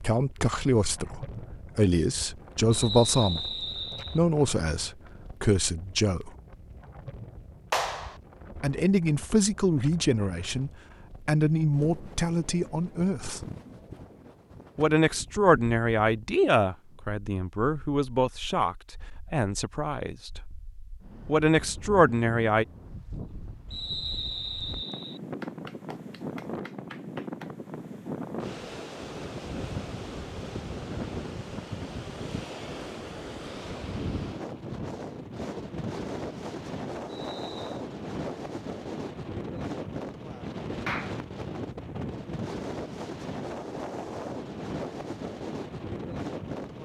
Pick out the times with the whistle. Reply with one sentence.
The whistle can be heard from 2.7 to 4.2 s, from 23.7 to 25.2 s and from 37.0 to 37.9 s.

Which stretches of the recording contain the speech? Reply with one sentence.
The speech can be heard from 0.0 to 6.3 s, from 8.6 to 13.4 s, from 14.8 to 20.4 s and from 21.2 to 22.6 s.